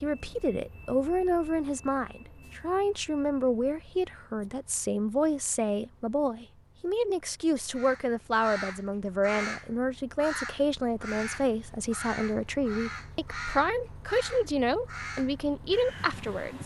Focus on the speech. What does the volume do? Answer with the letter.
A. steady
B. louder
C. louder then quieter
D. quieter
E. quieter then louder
A.